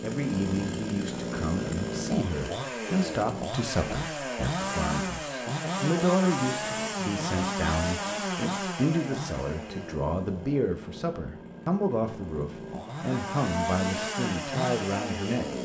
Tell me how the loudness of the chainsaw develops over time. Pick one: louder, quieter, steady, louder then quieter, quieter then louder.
quieter then louder.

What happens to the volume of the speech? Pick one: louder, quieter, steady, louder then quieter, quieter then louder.
steady.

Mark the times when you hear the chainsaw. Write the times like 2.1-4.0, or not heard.
0.0-15.6.